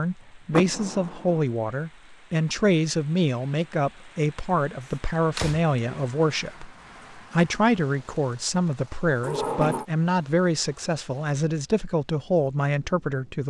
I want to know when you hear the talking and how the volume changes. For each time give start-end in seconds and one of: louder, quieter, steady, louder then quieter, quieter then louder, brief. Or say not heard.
0.0-13.4 steady.